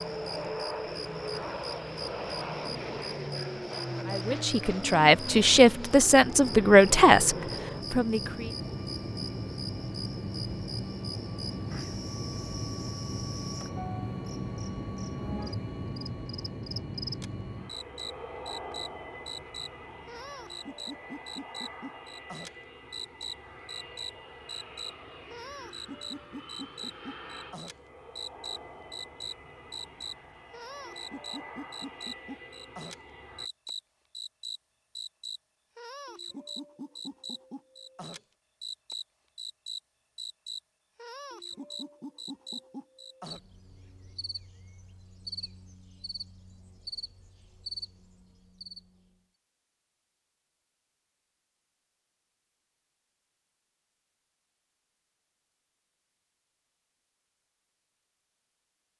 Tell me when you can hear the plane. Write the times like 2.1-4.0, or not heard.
0.0-33.5.